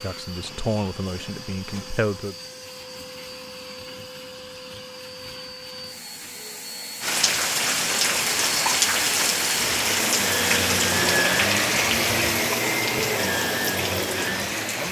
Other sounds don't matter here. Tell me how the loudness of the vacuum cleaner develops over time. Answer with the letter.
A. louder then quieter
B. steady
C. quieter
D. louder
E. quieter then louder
D.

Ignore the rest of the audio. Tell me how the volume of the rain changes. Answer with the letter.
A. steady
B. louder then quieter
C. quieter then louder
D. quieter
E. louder
D.